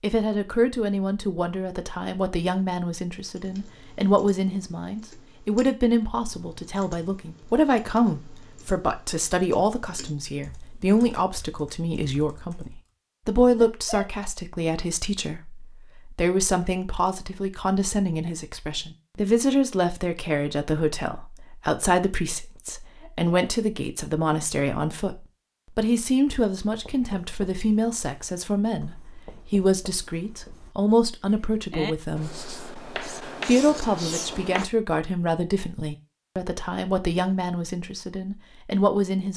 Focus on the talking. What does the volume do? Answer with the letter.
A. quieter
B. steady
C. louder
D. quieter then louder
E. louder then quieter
B.